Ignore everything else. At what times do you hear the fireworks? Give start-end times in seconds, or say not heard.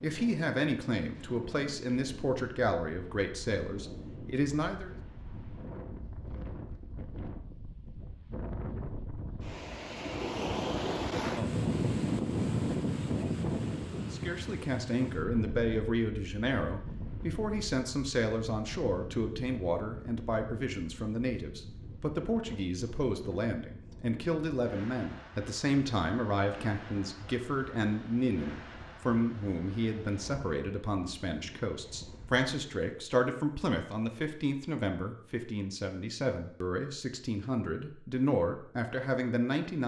not heard.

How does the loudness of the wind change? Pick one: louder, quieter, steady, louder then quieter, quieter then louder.
louder then quieter.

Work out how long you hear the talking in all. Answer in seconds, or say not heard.
31 s.